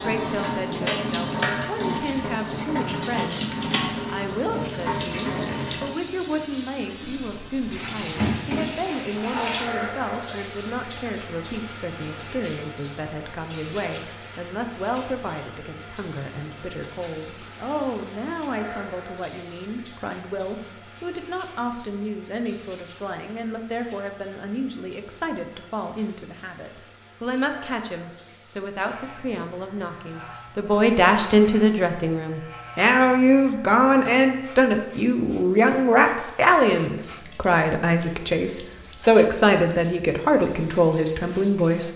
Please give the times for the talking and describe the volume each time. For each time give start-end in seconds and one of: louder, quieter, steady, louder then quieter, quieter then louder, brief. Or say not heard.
0.0-41.9 louder.